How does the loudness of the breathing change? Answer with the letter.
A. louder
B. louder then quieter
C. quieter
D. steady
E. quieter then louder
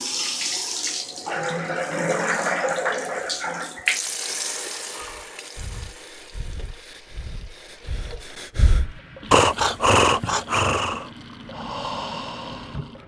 B.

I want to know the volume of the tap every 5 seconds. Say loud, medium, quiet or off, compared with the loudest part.
loud, quiet, quiet.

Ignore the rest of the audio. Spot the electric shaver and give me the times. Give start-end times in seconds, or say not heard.
not heard.